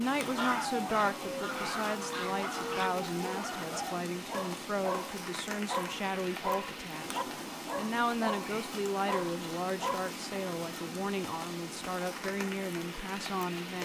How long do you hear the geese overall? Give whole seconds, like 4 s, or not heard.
3 s.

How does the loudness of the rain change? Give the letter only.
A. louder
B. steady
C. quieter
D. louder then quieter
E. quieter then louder
B.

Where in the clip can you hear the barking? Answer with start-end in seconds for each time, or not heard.
0.3-10.2.